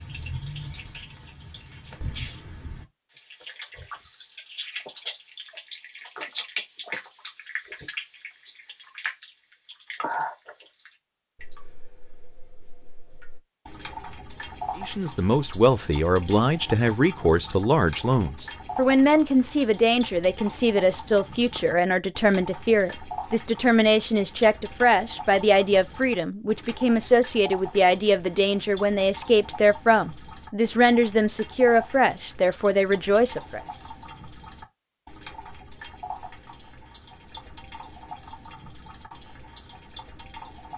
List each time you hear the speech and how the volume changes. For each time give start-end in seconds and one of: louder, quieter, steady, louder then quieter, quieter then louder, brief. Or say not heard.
14.8-33.6 steady.